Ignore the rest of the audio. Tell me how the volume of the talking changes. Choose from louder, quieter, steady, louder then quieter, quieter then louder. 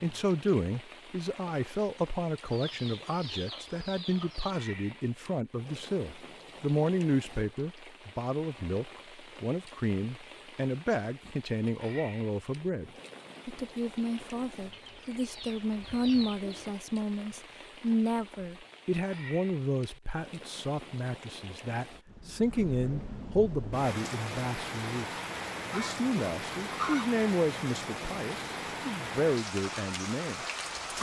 steady.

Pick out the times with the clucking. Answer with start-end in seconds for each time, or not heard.
2.5-4.5, 14.7-16.8, 25.6-27.1.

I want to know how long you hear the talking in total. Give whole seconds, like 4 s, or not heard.
31 s.